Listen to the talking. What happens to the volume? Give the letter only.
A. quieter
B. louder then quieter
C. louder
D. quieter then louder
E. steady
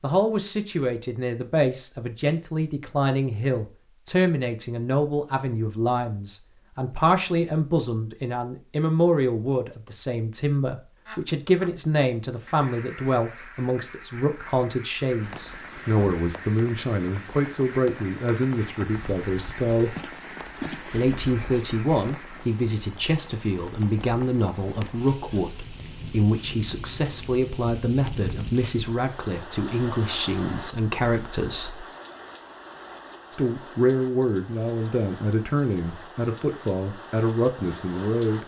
E.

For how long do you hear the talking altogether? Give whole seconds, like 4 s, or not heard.
36 s.